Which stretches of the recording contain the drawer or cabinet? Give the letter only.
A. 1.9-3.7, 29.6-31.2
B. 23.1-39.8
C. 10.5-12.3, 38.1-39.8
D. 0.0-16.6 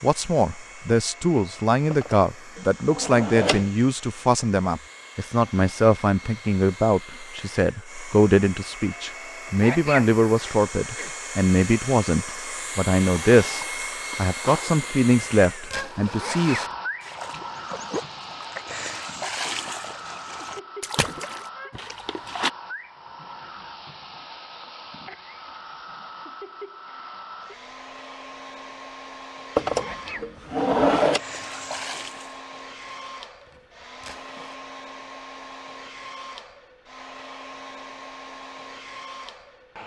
A.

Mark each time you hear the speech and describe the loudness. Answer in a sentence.
You can hear the speech from 0.0 to 16.6 s, at a steady volume.